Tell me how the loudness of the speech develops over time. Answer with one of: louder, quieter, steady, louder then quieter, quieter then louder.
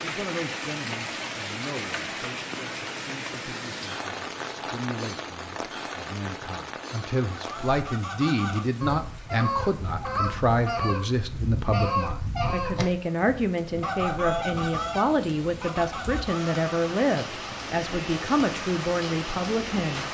louder.